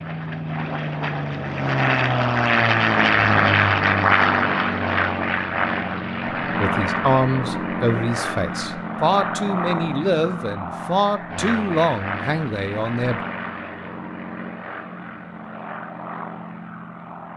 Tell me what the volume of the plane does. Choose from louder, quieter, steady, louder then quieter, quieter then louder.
quieter.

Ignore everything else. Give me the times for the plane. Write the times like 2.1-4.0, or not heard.
0.0-17.3.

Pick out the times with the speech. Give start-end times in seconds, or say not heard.
6.5-13.2.